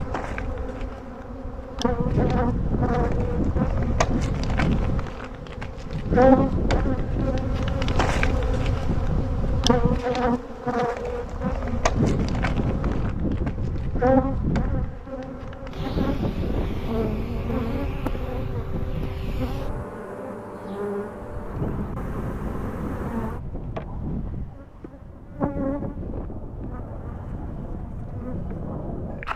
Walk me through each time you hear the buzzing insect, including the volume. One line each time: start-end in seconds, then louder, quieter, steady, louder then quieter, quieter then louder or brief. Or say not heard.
0.0-29.3 louder then quieter.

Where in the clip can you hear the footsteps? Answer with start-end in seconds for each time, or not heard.
not heard.